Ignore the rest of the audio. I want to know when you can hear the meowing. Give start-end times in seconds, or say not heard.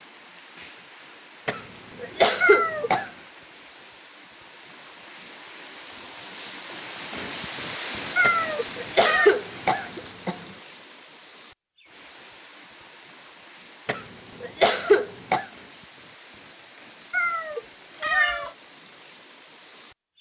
2.4-2.9, 8.2-9.3, 17.1-18.5.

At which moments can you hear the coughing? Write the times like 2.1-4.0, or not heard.
1.4-3.1, 8.2-10.3, 13.8-15.4.